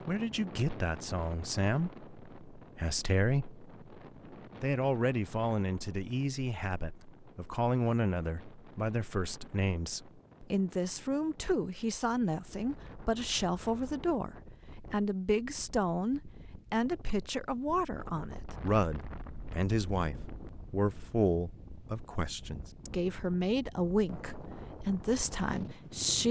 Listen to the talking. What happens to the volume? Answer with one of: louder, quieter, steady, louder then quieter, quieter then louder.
steady.